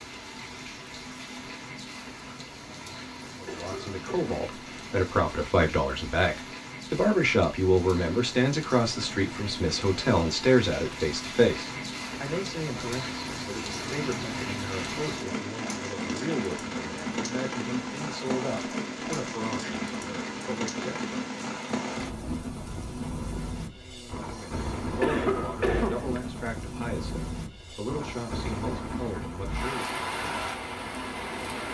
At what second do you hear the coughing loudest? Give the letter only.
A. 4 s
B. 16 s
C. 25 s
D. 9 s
C.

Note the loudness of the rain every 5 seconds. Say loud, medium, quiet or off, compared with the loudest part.
medium, medium, loud, loud, loud, loud, loud.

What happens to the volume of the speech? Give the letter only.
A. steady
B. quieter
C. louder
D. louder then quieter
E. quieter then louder
B.